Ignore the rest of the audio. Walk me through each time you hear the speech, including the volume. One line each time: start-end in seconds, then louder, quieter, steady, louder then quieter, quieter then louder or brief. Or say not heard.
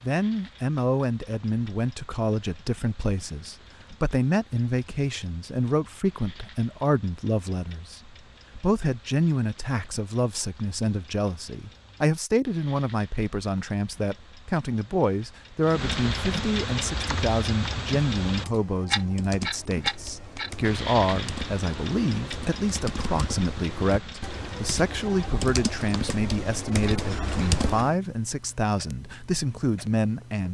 0.0-30.4 steady.